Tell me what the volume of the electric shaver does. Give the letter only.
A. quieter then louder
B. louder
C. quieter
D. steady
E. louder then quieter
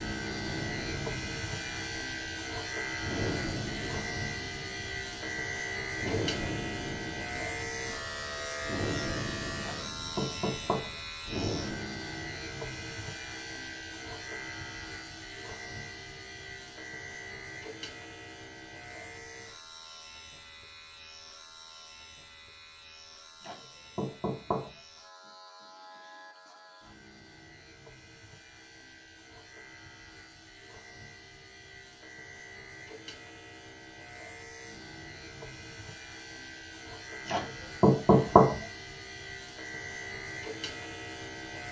A.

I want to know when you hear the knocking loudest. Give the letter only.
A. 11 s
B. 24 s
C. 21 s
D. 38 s
D.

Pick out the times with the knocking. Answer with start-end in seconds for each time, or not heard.
9.6-10.9, 23.4-24.7, 37.2-38.5.